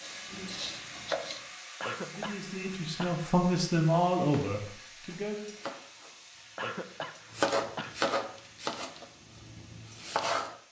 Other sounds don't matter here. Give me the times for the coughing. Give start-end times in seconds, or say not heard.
1.8-3.2, 6.5-8.0.